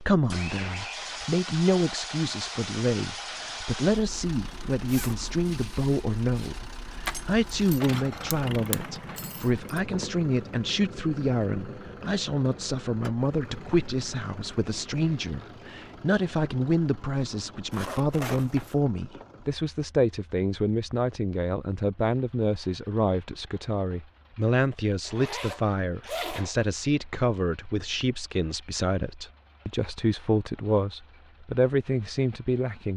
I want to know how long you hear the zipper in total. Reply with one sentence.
You can hear the zipper for 3 seconds altogether.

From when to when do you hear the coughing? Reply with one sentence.
The coughing can't be heard in this clip.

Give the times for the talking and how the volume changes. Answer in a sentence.
You can hear the talking from 0.0 to 32.9 s, at a steady volume.